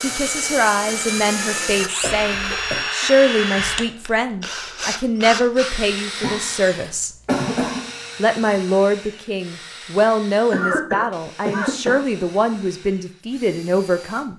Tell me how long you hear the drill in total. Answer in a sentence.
The drill can be heard for 14 seconds in total.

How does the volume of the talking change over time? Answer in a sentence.
The loudness of the talking stays about the same.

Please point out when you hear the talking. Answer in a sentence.
You can hear the talking from 0.0 to 7.1 s and from 8.2 to 14.3 s.